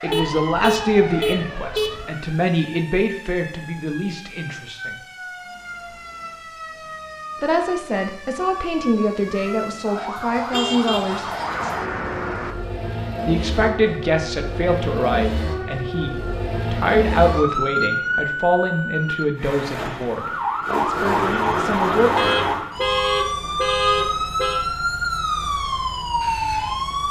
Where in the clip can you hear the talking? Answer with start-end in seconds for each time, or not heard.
0.0-5.0, 7.4-11.2, 13.2-22.1.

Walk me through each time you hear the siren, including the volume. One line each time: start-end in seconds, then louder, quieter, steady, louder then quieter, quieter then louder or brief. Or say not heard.
0.0-27.0 louder.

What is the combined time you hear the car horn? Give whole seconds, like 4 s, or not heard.
7 s.